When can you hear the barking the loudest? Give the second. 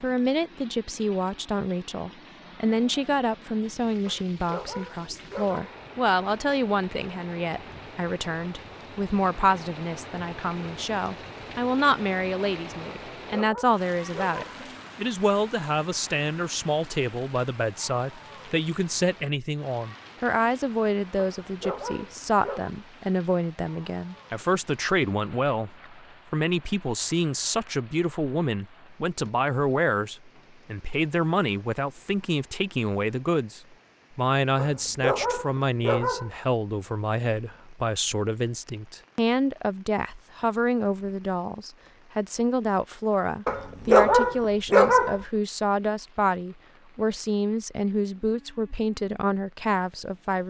44 s.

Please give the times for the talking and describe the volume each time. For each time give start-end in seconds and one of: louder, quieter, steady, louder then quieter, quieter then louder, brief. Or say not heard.
0.0-50.4 steady.